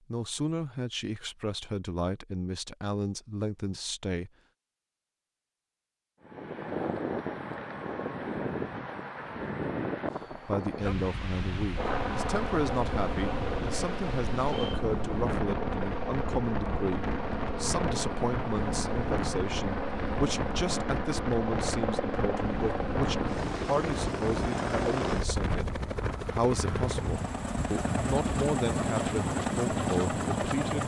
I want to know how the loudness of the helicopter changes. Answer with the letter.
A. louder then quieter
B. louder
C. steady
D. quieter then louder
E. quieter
C.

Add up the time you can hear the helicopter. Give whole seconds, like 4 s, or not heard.
19 s.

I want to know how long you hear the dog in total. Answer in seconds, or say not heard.
not heard.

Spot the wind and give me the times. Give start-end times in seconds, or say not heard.
6.2-30.8.